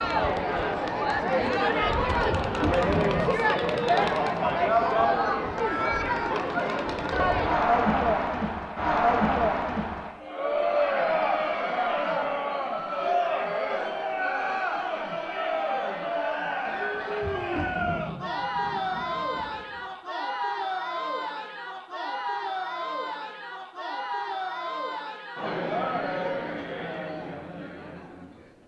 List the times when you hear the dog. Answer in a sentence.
You can't hear the dog here.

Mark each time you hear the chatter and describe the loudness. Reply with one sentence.
You can hear the chatter from 0.0 to 28.6 s, getting quieter.